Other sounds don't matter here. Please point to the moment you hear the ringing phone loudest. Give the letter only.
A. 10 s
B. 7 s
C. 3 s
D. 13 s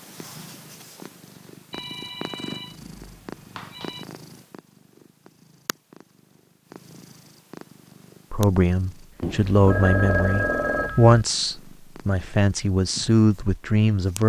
A.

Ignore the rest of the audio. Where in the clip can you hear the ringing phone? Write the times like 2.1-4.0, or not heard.
1.7-4.0, 9.2-11.2.